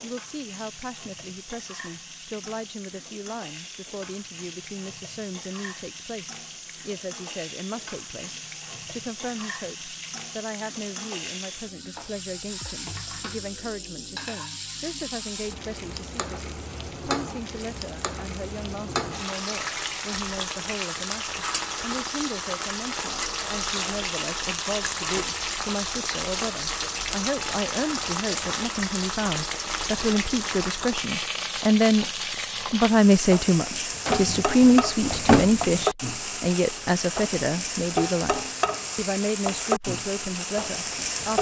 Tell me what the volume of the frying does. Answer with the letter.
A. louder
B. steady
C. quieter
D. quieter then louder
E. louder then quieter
A.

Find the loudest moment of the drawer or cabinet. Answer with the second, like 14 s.
35 s.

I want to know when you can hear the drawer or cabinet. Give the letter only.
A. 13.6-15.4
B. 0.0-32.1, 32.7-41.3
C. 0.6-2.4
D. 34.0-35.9
D.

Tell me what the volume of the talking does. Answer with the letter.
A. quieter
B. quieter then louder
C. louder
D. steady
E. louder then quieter
C.